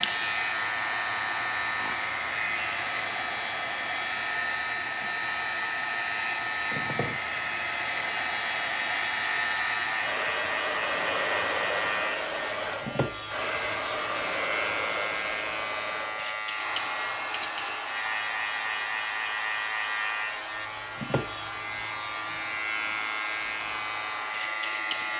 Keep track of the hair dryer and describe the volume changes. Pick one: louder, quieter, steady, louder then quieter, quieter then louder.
quieter.